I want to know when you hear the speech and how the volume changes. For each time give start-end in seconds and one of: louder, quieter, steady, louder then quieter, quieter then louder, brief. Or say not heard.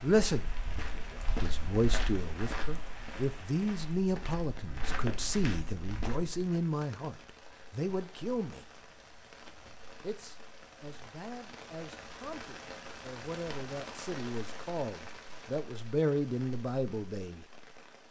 0.0-8.7 steady
10.0-17.4 louder.